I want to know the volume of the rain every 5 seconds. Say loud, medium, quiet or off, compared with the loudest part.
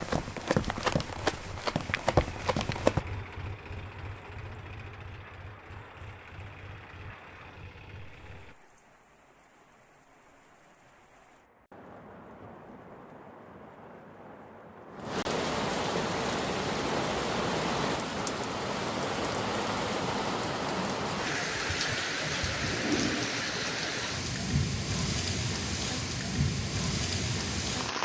quiet, quiet, quiet, loud, loud, loud.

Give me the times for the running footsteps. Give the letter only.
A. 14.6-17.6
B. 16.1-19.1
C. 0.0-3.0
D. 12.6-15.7
C.